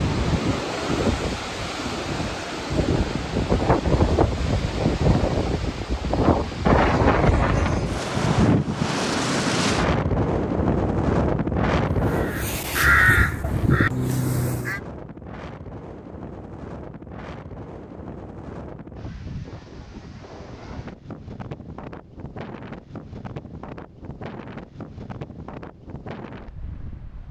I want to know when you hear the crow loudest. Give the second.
13 s.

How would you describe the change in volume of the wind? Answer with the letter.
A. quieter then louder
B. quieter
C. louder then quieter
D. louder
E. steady
B.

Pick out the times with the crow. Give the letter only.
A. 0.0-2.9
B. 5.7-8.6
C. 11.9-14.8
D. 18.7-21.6
C.